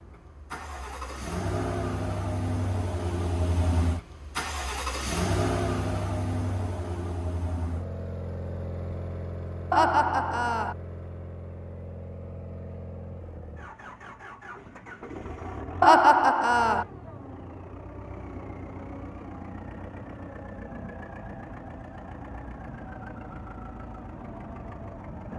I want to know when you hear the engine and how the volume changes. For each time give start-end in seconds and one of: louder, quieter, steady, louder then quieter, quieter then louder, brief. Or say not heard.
0.0-25.3 quieter.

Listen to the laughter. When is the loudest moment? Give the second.
16 s.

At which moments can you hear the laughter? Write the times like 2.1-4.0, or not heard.
9.7-10.8, 15.8-16.9.